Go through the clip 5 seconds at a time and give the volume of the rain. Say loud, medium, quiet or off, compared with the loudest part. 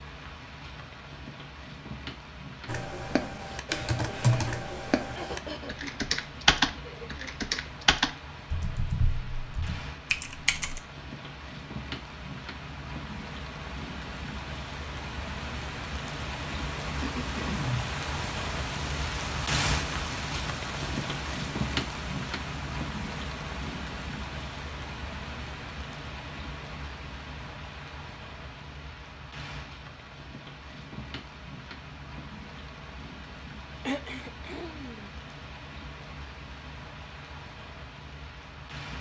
medium, medium, medium, loud, loud, medium, medium, medium.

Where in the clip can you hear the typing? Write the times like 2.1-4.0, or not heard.
2.6-10.8.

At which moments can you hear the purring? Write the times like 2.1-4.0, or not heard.
not heard.